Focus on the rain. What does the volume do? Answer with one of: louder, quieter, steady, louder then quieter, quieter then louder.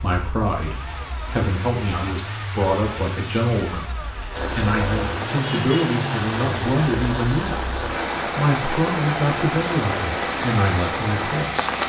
steady.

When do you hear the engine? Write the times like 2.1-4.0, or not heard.
0.0-11.8.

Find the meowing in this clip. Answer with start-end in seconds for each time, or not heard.
not heard.